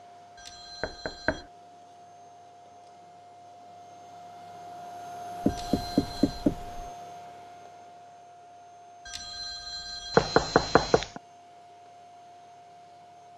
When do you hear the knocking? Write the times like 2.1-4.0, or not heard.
0.8-1.4, 5.4-6.9, 10.2-11.2.